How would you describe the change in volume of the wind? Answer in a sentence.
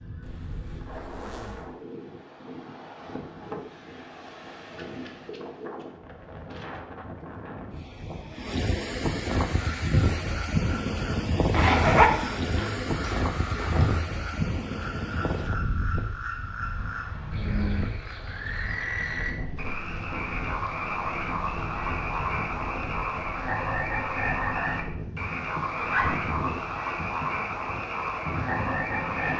The loudness of the wind goes up, then down.